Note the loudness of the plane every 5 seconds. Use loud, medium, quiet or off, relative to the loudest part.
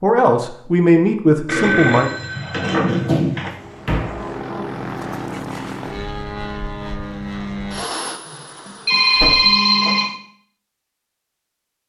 loud, loud, off.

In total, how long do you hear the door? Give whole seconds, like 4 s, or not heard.
2 s.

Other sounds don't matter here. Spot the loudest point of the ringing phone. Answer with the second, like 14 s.
9 s.